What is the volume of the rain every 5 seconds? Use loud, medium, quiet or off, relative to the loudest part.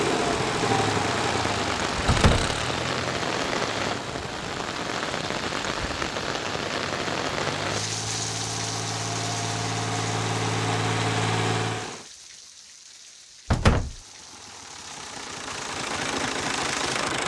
loud, loud, quiet, medium.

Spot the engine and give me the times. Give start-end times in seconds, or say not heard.
0.0-12.1, 13.8-17.2.